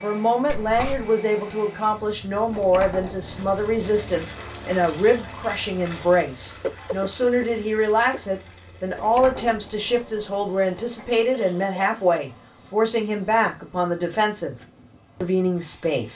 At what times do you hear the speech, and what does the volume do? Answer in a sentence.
You can hear the speech from 0.0 to 14.6 s, at a steady volume; and briefly from 15.2 to 16.1 s.